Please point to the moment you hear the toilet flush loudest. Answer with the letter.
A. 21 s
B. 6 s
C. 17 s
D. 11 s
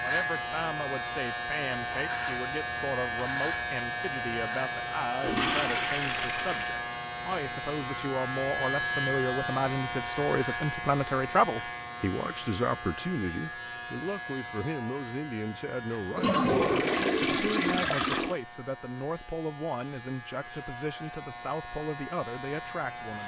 C.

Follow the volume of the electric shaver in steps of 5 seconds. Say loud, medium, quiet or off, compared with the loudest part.
loud, loud, medium, quiet, medium.